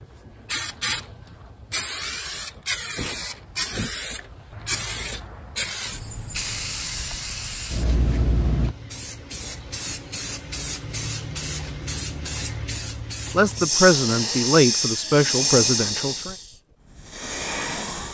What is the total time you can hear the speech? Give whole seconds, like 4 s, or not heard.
3 s.